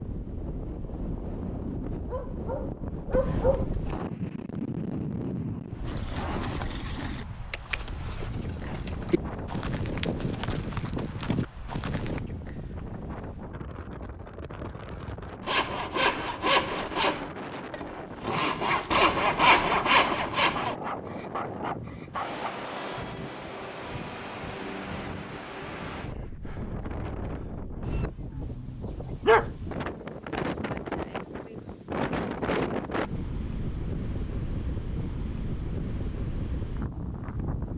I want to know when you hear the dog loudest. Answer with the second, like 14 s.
29 s.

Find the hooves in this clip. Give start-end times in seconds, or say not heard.
5.8-12.2.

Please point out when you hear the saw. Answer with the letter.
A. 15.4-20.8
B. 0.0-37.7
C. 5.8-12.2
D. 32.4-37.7
A.